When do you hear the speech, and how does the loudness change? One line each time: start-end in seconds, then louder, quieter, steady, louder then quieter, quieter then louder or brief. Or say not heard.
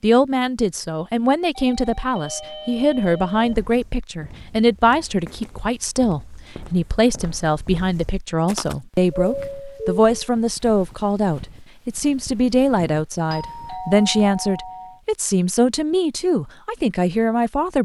0.0-17.8 steady.